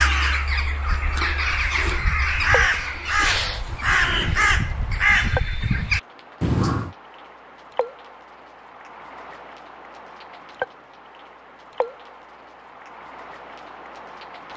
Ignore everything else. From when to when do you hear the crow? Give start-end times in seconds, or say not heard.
0.0-7.0.